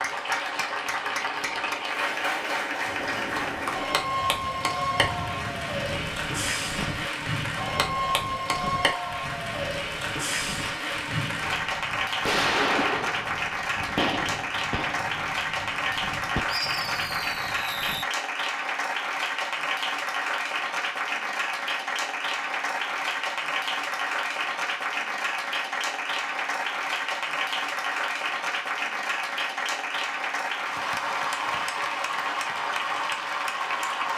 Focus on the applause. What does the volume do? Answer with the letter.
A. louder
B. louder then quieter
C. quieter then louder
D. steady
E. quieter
D.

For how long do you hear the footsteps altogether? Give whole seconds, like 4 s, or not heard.
not heard.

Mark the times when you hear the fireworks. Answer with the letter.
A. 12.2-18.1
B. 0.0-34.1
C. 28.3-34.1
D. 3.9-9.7
A.